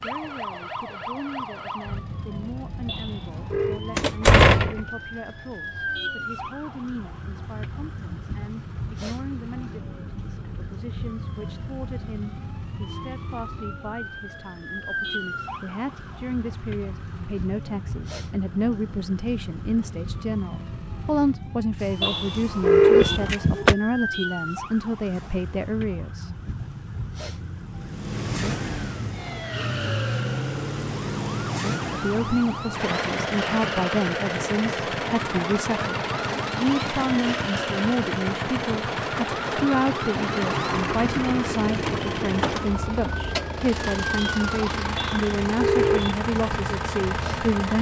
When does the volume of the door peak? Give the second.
4 s.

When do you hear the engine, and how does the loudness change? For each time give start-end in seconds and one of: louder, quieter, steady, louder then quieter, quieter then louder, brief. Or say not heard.
0.0-47.7 louder.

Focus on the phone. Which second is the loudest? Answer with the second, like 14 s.
23 s.